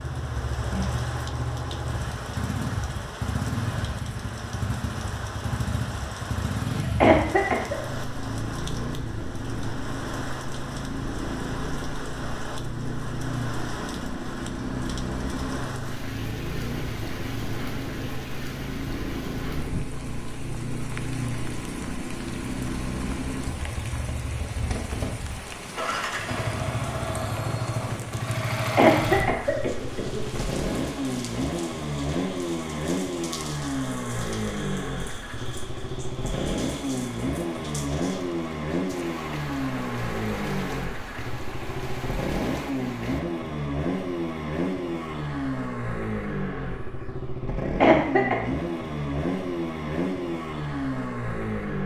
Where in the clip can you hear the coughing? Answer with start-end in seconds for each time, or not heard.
6.8-7.8, 28.6-30.4, 47.6-48.4.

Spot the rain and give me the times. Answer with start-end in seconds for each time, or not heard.
0.0-43.2.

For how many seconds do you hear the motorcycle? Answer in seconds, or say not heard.
52 s.